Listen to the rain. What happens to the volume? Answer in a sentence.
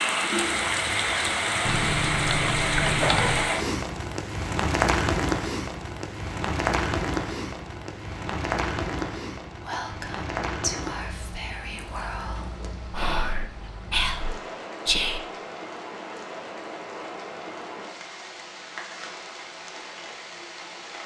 The volume of the rain goes down.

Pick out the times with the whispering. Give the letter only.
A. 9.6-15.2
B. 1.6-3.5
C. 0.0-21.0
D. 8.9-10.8
A.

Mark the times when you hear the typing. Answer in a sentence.
You can hear the typing from 1.6 to 3.5 s.